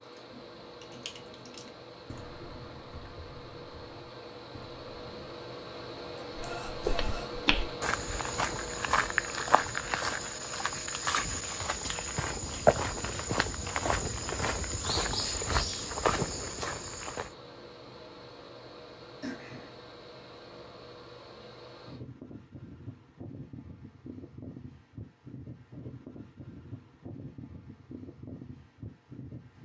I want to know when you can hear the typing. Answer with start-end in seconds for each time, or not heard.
0.0-5.3.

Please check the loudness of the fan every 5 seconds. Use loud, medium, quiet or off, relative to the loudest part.
medium, loud, medium, medium, medium, medium.